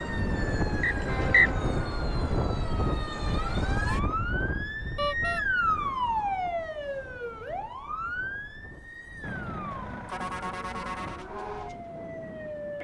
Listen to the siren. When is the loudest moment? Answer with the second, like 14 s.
6 s.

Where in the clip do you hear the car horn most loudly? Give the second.
5 s.